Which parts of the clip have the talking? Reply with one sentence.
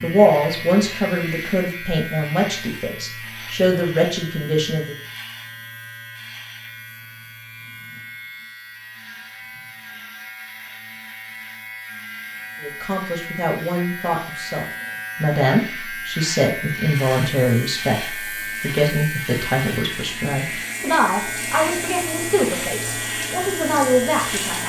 You can hear the talking from 0.0 to 5.0 s and from 12.6 to 24.6 s.